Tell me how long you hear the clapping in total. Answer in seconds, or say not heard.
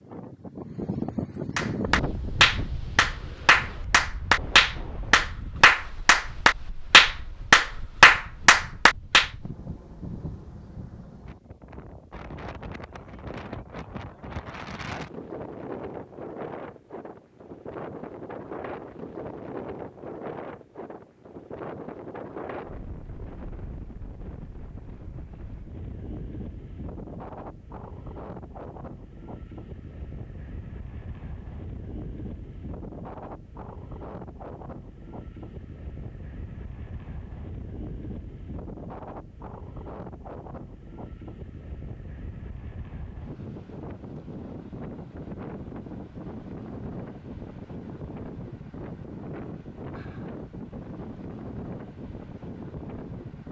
8 s.